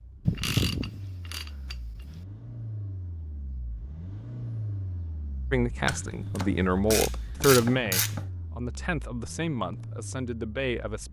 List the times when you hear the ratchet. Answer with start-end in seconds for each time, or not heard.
0.2-2.2, 5.8-8.2.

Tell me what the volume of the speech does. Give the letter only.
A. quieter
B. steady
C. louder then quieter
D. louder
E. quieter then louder
C.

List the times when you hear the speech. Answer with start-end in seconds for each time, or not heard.
5.5-11.0.